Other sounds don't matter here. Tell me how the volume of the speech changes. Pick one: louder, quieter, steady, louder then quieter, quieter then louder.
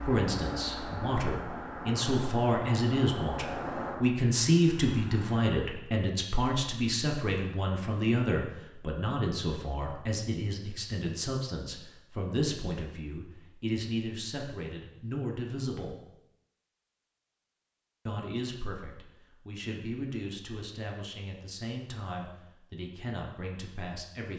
quieter.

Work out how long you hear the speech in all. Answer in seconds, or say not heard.
22 s.